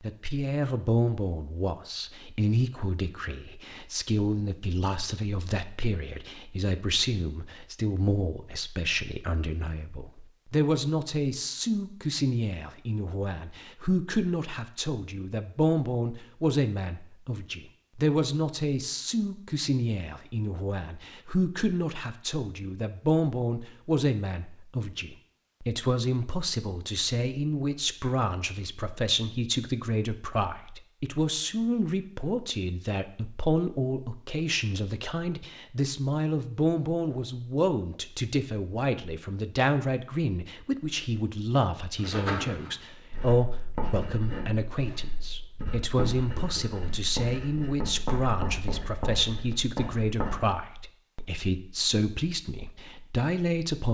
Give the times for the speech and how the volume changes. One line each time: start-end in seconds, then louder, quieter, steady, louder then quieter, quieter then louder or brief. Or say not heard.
0.0-53.8 steady.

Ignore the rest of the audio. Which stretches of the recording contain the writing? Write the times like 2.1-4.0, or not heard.
42.0-50.4.